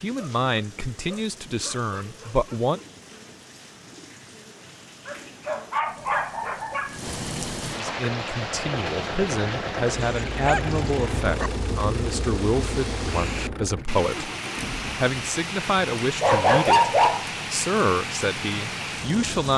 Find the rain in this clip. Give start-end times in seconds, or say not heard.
0.0-19.5.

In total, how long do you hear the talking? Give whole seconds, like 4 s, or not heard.
14 s.